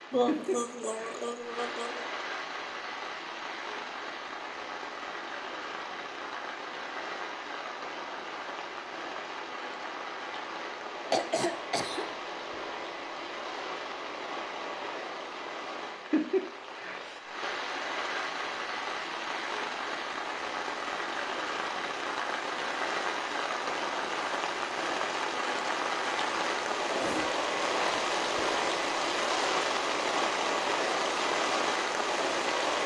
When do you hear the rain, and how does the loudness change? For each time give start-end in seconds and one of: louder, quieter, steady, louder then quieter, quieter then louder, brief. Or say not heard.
0.0-32.8 louder.